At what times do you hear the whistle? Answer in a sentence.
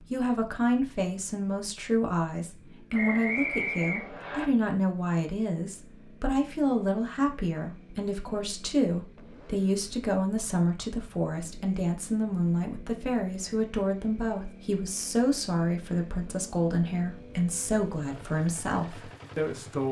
You can hear the whistle from 2.9 to 4.5 s.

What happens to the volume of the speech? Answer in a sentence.
The volume of the speech stays about the same.